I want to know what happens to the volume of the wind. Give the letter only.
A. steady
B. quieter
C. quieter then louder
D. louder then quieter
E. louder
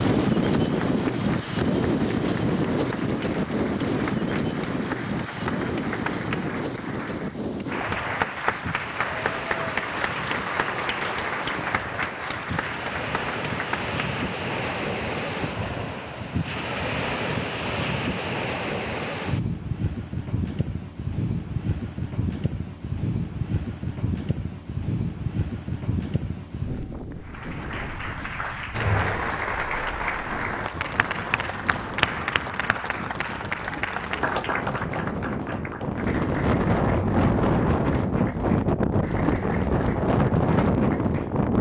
C.